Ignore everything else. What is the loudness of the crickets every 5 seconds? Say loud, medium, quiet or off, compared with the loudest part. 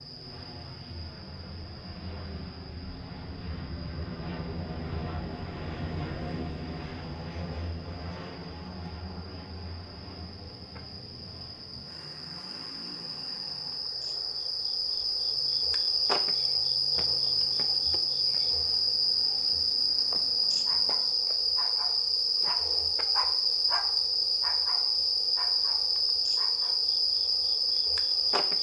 quiet, quiet, medium, loud, loud, loud.